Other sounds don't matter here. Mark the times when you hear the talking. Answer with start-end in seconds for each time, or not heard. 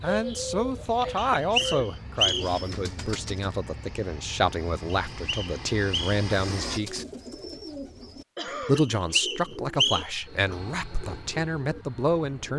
0.0-7.0, 8.6-12.5.